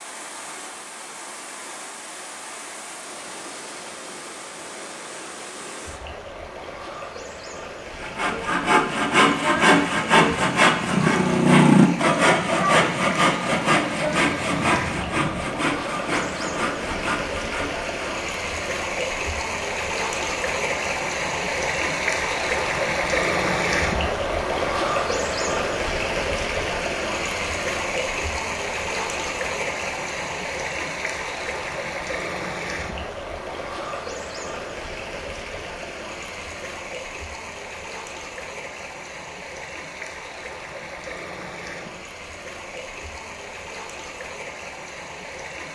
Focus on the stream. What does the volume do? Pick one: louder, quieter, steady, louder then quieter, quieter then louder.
louder then quieter.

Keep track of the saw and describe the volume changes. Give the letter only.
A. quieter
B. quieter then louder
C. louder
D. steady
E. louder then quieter
A.